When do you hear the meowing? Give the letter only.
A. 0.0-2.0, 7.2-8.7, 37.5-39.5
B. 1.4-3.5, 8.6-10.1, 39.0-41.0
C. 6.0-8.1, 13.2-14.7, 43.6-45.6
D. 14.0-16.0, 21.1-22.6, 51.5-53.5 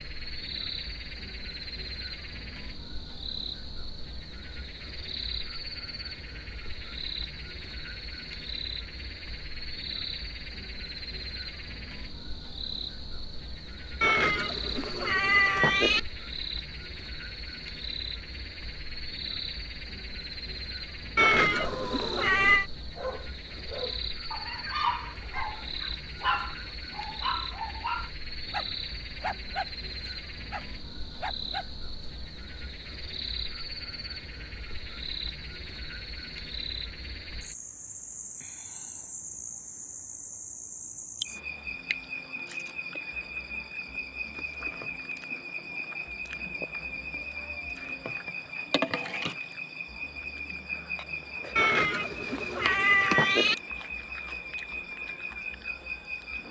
D.